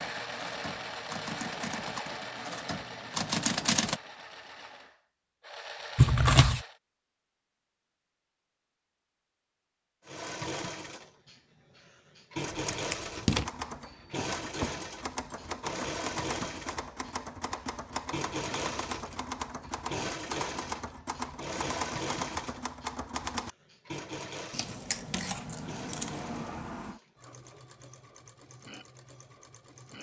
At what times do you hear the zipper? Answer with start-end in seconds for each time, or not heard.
not heard.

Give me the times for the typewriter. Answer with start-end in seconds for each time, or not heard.
0.0-4.0, 13.3-23.5.